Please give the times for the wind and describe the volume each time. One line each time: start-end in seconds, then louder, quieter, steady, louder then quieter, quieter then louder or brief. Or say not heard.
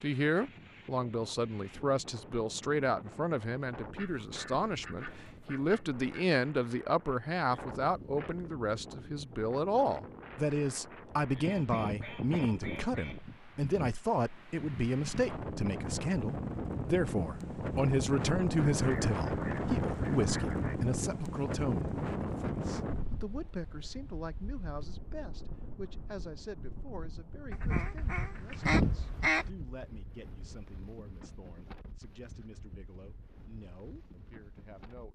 0.0-35.1 louder then quieter.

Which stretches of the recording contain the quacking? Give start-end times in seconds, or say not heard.
4.0-6.2, 11.4-13.2, 18.6-20.8, 27.5-29.5.